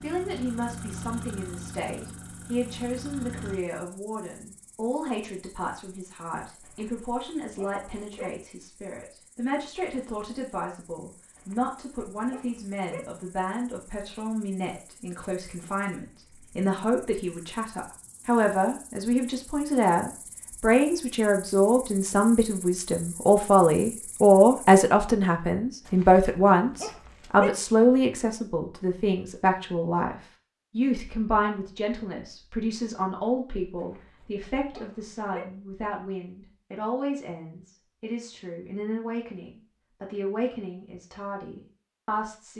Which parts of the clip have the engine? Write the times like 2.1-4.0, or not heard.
0.0-3.6.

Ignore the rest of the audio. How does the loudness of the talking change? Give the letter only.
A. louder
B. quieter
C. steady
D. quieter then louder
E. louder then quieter
E.